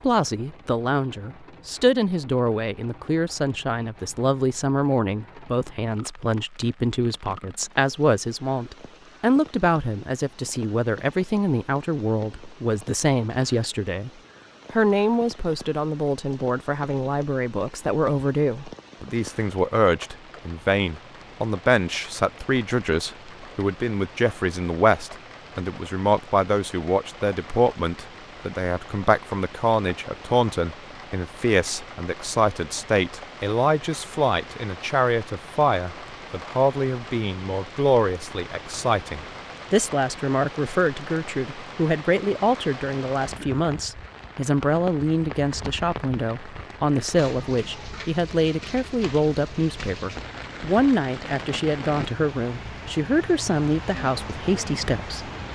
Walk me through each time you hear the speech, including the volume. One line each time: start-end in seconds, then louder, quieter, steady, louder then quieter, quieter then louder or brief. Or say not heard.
0.0-14.1 steady
14.7-55.3 steady.